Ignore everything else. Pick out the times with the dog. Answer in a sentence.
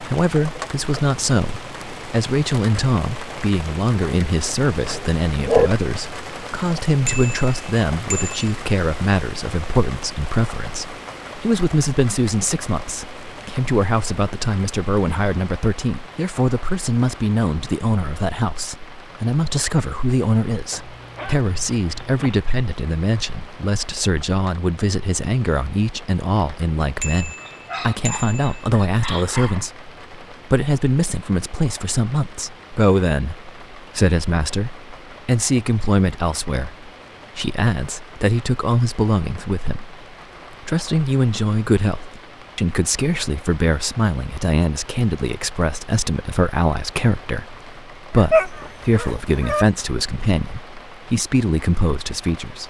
The dog can be heard from 4.5 to 5.7 s, from 20.7 to 22.4 s, from 27.4 to 29.7 s and from 48.1 to 49.6 s.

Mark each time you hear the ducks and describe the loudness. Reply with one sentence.
You can't hear the ducks here.